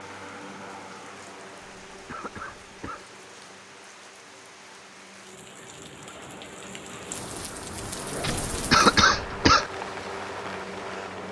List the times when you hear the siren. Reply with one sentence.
The siren can't be heard in this clip.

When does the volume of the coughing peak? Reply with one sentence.
The volume of the coughing peaks at 9 seconds.